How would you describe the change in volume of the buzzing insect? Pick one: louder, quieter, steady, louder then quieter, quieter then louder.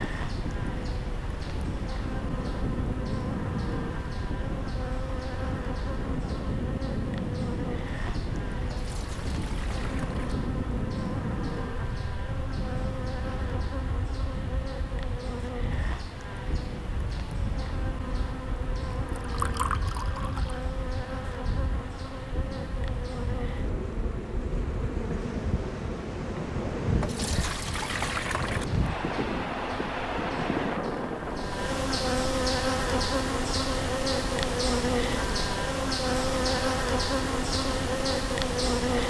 louder.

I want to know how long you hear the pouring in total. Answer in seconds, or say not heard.
5 s.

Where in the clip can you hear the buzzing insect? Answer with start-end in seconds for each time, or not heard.
0.0-39.0.